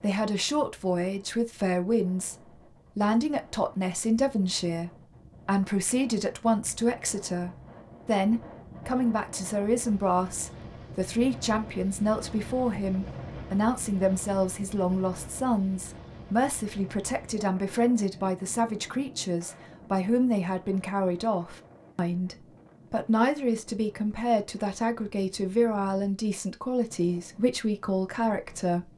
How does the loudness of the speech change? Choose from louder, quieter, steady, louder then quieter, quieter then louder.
steady.